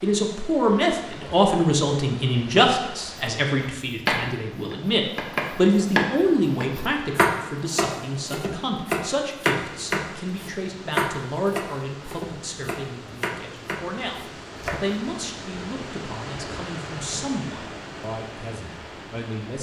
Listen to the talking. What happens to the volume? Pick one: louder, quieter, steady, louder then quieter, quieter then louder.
quieter.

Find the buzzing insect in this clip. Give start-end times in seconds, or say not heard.
not heard.